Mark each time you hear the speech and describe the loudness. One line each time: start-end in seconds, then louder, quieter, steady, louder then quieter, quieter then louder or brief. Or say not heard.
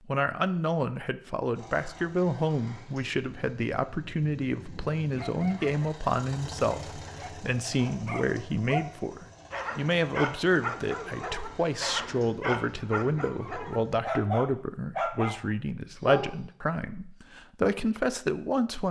0.1-18.8 steady.